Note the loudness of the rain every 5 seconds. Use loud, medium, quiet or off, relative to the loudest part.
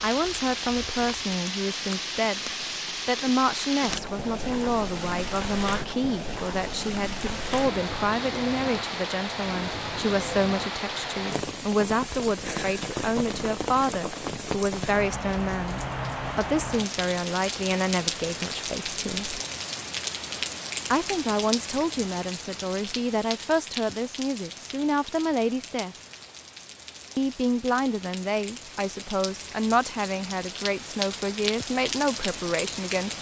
loud, loud, loud, loud, loud, medium, loud.